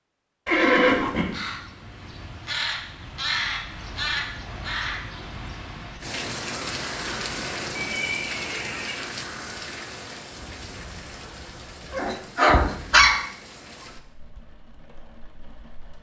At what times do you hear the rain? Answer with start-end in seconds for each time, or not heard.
6.0-15.9.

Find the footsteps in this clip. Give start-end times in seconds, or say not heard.
not heard.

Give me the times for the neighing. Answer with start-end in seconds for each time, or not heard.
0.5-1.2, 7.8-9.1, 12.4-13.1.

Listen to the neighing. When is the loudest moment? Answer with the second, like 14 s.
1 s.